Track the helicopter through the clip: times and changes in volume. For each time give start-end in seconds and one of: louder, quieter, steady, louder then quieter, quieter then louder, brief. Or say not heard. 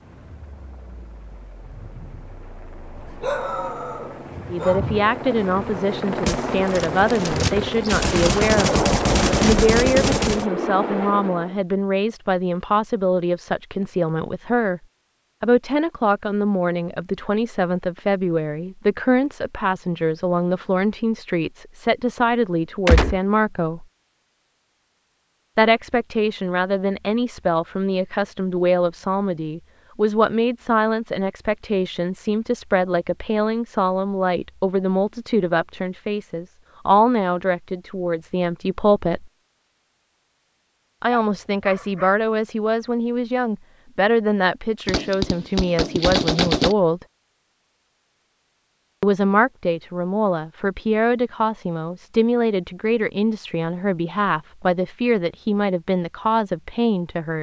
0.0-11.6 louder.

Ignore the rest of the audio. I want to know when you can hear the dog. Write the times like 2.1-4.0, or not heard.
3.0-5.0, 41.1-42.2.